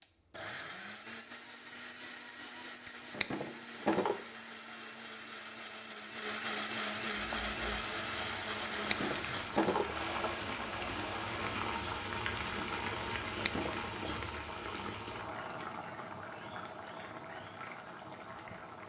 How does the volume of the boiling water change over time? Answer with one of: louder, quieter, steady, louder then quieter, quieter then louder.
louder then quieter.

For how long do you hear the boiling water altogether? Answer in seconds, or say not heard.
12 s.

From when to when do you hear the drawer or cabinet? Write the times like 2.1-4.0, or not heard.
2.9-4.2, 8.6-9.9, 13.3-13.8.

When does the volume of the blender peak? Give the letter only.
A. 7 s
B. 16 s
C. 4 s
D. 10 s
A.